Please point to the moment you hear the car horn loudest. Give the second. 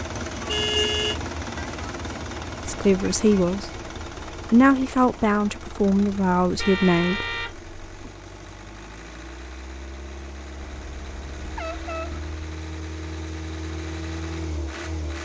1 s.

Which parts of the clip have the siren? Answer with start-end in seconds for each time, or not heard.
not heard.